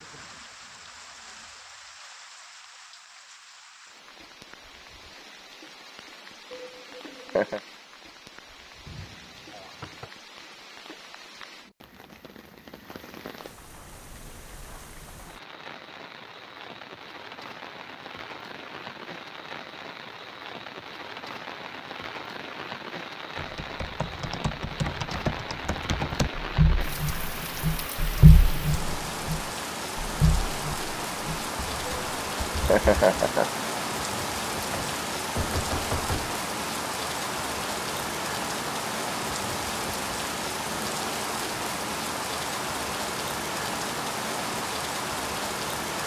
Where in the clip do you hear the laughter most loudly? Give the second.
33 s.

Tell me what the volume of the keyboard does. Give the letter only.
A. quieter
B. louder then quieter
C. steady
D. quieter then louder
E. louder
B.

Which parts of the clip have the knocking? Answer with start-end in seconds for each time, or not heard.
8.8-10.1, 34.7-36.4.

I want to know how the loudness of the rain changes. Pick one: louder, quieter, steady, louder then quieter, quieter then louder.
louder.